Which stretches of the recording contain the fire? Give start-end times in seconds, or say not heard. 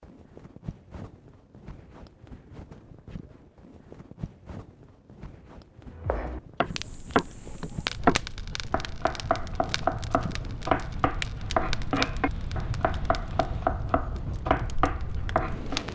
6.7-15.9.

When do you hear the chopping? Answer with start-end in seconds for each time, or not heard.
5.9-15.8.